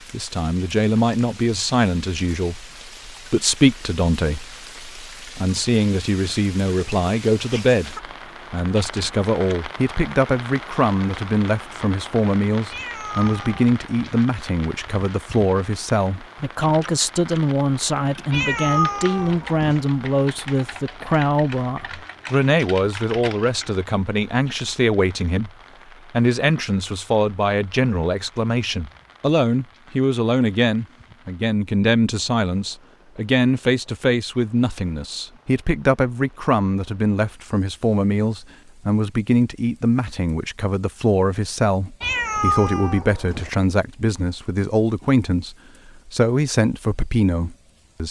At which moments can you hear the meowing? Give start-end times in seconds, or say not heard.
12.7-14.2, 18.3-19.8, 42.0-43.5.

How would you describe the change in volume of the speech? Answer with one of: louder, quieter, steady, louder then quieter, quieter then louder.
steady.